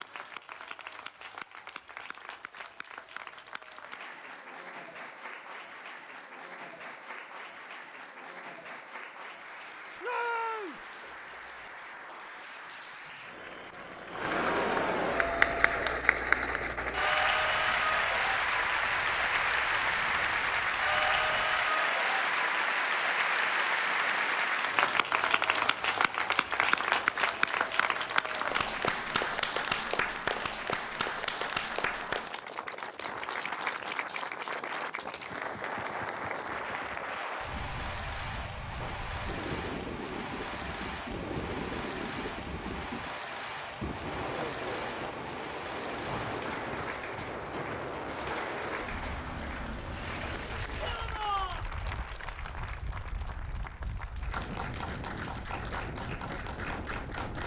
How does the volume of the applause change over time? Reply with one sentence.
The volume of the applause goes up, then down.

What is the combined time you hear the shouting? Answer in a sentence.
The shouting can be heard for 2 seconds in total.